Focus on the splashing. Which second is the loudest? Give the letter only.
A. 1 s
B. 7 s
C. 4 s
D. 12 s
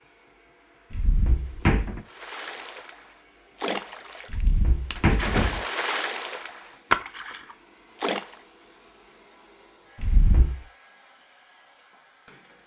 B.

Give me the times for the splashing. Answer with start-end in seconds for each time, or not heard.
2.0-8.3.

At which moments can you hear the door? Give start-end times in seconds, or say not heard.
0.9-2.0, 4.3-5.6, 10.0-10.6.